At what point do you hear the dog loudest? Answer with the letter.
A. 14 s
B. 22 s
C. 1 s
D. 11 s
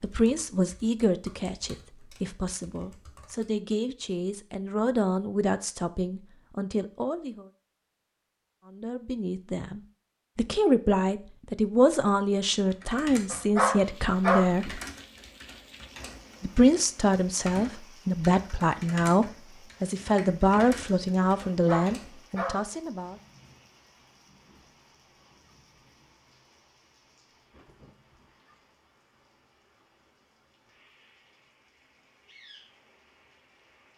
A.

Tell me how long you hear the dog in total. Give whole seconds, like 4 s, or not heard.
2 s.